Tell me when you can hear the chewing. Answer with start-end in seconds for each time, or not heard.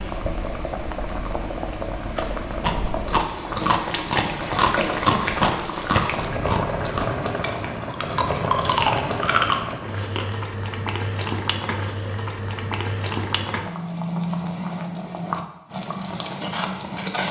2.1-10.3.